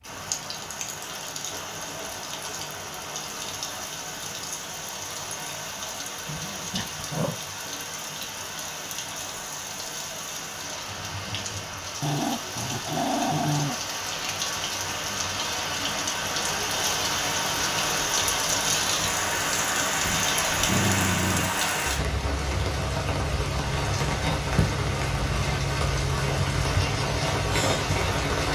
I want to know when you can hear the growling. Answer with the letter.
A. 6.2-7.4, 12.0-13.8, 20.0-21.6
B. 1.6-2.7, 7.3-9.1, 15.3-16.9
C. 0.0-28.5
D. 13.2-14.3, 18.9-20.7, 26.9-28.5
A.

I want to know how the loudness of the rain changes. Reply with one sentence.
The volume of the rain goes up.